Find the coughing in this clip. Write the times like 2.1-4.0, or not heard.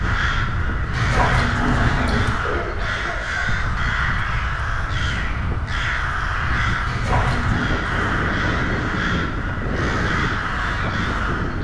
2.4-3.5.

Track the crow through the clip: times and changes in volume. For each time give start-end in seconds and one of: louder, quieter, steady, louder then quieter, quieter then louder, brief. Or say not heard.
0.0-11.5 steady.